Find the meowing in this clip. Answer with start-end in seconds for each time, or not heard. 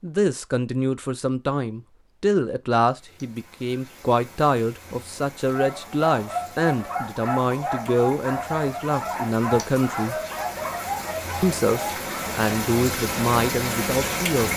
not heard.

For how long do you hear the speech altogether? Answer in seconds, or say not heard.
13 s.